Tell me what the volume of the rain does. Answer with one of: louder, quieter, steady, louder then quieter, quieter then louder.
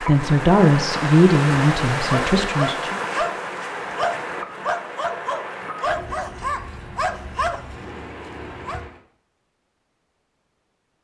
quieter.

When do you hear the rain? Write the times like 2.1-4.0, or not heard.
0.0-9.0.